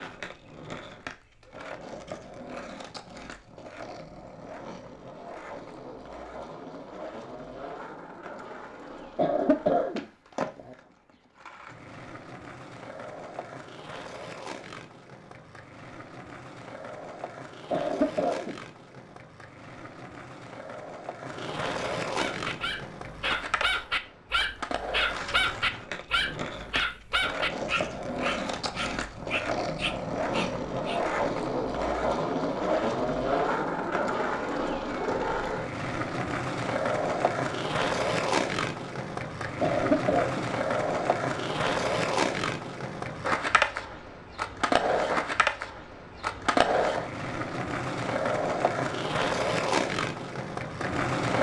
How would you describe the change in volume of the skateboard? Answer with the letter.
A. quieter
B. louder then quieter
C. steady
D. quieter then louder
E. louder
E.